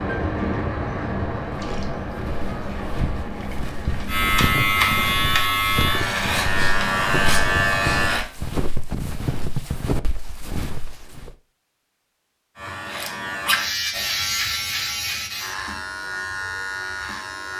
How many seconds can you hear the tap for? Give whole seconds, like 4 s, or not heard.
6 s.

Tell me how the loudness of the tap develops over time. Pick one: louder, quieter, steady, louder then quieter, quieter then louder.
quieter.